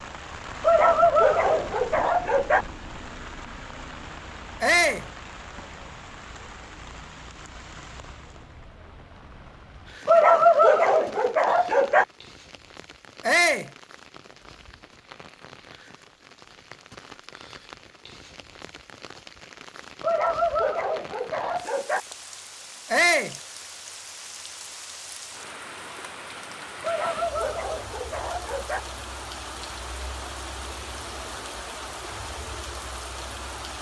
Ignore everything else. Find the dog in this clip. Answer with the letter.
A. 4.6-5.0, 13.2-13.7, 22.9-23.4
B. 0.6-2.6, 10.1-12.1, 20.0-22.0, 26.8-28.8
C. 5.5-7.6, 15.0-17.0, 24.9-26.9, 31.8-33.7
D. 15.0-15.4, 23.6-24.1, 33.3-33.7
B.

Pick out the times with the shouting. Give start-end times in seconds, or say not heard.
4.6-5.0, 13.2-13.7, 22.9-23.4.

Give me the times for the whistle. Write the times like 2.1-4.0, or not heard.
not heard.